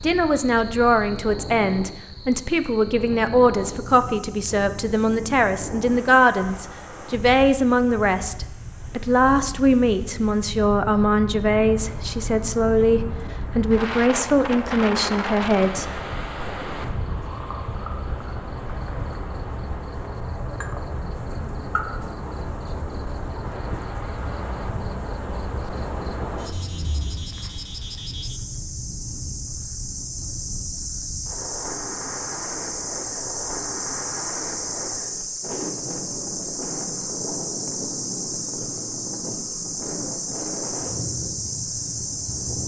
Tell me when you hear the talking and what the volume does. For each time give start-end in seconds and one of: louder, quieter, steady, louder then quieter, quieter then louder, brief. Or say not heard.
0.0-16.0 steady.